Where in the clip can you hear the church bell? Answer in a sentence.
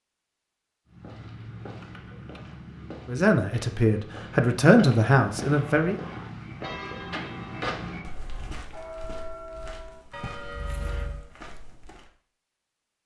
The church bell can be heard from 5.5 to 11.3 s.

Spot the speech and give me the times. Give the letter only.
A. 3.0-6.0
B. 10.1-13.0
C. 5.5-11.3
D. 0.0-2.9
A.